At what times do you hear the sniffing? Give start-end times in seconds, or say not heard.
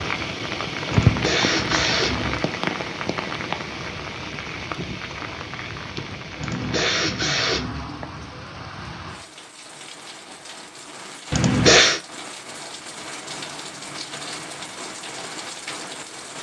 0.9-2.4, 6.4-8.0, 11.3-12.0.